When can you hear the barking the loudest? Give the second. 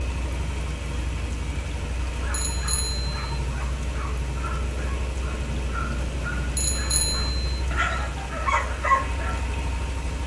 9 s.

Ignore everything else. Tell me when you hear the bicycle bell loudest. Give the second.
7 s.